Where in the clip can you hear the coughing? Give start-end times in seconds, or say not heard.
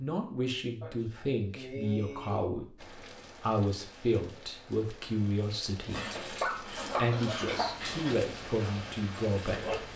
0.8-2.5, 6.5-7.8.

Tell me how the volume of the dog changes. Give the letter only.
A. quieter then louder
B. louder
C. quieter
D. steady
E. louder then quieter
C.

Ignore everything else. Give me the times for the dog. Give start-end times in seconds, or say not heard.
5.9-9.9.